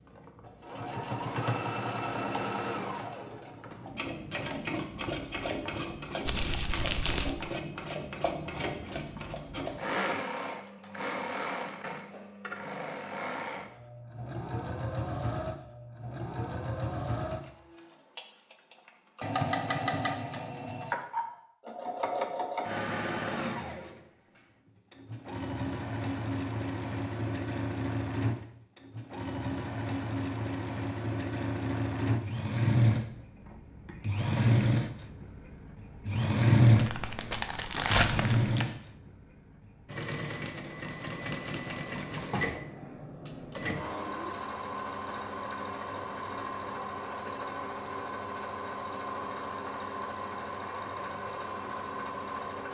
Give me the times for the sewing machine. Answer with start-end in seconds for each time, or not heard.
0.0-24.0, 24.9-52.6.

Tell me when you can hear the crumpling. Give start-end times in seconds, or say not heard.
6.2-7.4, 36.8-38.6.